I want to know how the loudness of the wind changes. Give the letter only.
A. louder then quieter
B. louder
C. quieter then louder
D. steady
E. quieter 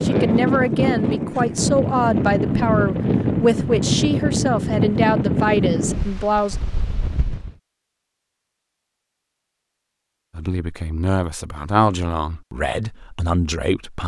E.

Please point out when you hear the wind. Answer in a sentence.
The wind can be heard from 0.0 to 7.5 s.